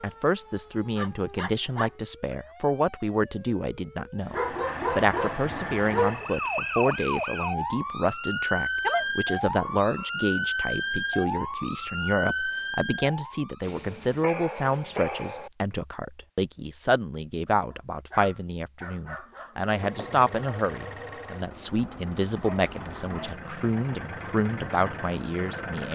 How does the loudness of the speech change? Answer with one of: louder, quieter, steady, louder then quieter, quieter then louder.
steady.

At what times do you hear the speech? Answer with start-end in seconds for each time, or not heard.
0.0-25.8.